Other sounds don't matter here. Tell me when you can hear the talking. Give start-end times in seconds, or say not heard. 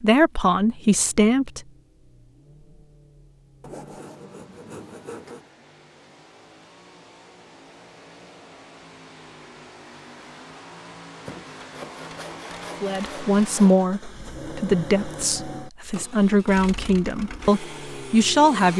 0.0-1.6, 12.8-18.7.